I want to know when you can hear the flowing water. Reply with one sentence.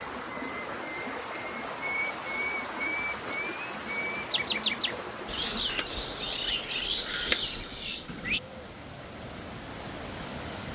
The flowing water can be heard from 0.0 to 10.7 s.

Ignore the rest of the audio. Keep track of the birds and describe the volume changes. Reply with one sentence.
The loudness of the birds goes up.